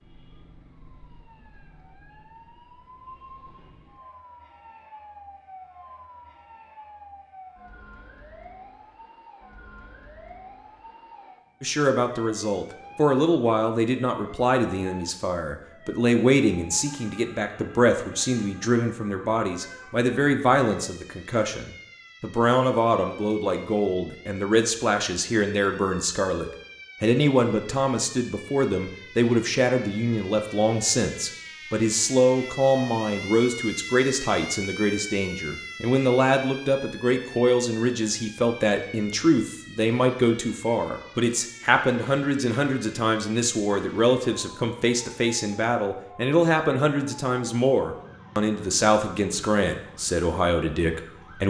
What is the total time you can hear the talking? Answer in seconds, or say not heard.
40 s.